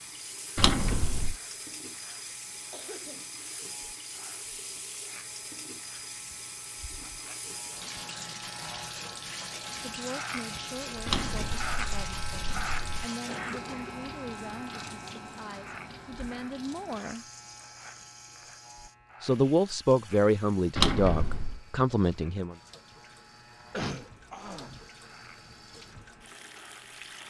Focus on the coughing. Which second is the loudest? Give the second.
24 s.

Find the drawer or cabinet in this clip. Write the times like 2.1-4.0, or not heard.
0.6-1.4, 11.1-13.1, 20.8-21.6.